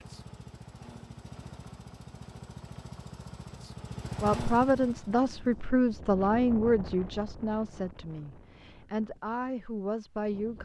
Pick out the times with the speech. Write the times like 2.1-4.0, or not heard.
4.2-10.6.